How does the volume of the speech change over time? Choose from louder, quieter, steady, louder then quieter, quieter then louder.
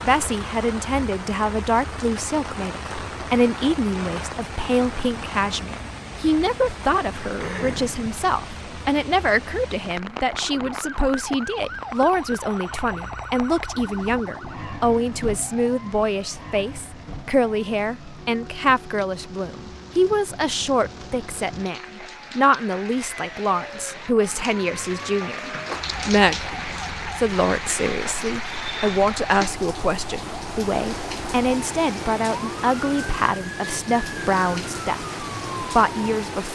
steady.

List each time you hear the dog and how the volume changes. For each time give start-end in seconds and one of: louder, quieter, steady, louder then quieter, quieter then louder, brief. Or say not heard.
not heard.